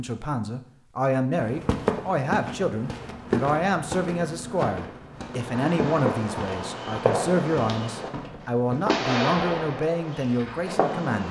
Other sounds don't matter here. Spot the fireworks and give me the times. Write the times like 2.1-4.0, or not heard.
5.4-8.1, 8.8-11.2.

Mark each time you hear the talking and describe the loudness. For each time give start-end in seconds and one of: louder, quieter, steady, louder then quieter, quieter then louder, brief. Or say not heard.
0.0-11.2 steady.